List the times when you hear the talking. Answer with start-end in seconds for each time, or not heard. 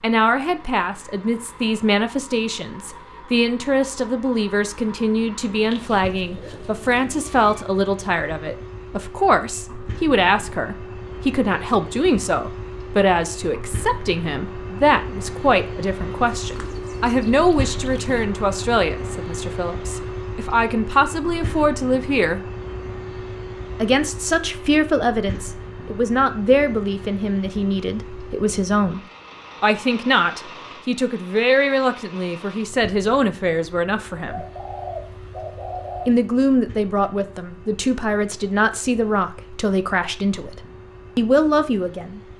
0.0-22.4, 23.8-29.0, 29.6-34.5, 36.0-42.2.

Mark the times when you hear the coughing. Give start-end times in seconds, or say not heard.
not heard.